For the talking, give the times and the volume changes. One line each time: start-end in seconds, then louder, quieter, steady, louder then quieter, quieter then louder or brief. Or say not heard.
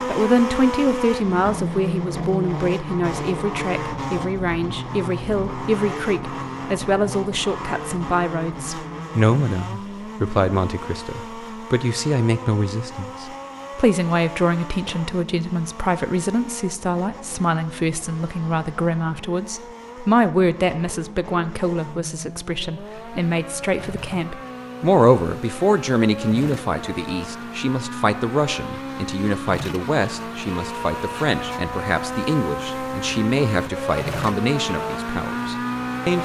0.1-36.2 steady.